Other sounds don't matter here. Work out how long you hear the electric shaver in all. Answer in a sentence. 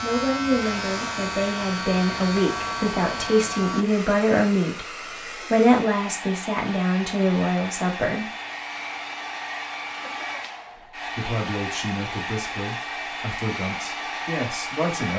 The electric shaver can be heard for 4 seconds in total.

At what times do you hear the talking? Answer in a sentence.
You can hear the talking from 0.0 to 8.3 s and from 11.0 to 15.1 s.